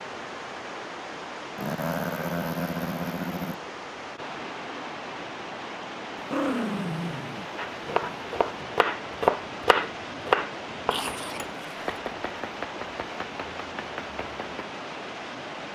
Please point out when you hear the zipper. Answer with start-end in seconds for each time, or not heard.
not heard.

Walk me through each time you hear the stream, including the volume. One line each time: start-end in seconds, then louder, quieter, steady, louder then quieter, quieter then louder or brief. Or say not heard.
0.0-15.7 steady.